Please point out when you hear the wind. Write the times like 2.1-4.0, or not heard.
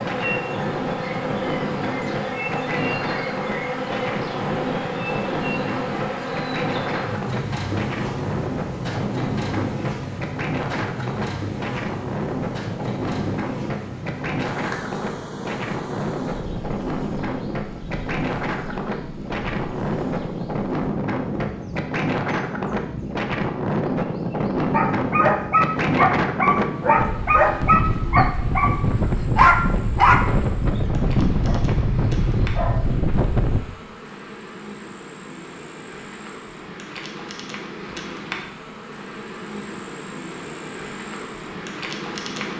0.0-33.6.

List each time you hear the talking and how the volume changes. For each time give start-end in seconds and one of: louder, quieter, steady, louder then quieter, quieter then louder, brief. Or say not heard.
not heard.